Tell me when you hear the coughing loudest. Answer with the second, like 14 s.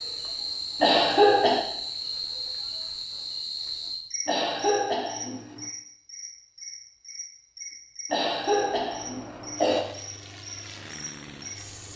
1 s.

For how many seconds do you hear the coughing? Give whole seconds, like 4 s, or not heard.
4 s.